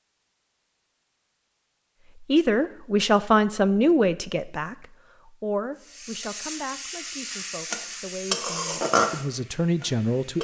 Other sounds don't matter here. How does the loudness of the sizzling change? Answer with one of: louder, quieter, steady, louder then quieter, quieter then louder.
louder then quieter.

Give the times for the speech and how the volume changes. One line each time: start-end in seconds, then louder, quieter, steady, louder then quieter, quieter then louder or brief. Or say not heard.
2.2-10.3 quieter then louder.